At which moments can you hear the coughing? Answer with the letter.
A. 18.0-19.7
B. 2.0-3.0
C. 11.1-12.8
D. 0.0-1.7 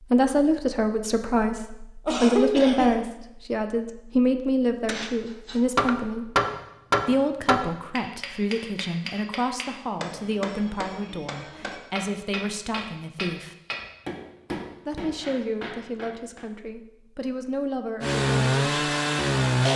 B.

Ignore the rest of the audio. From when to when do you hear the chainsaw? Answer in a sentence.
The chainsaw can be heard from 18.0 to 19.7 s.